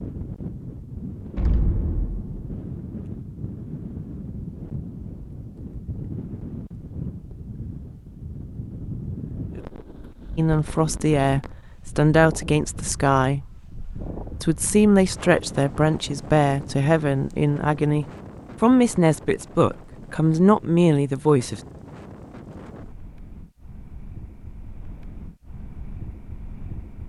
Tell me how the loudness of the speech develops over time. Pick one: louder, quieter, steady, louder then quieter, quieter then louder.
steady.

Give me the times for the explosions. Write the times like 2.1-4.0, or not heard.
1.4-2.6.